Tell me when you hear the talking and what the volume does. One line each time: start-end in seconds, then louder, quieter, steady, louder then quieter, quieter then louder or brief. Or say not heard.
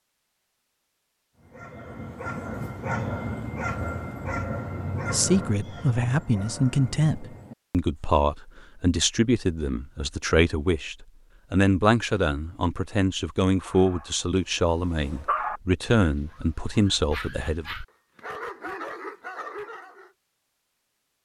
5.0-17.8 steady.